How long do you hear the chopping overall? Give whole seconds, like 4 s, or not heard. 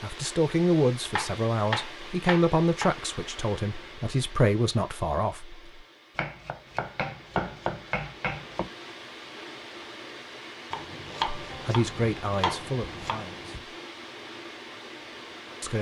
7 s.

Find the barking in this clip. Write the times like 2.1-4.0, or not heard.
not heard.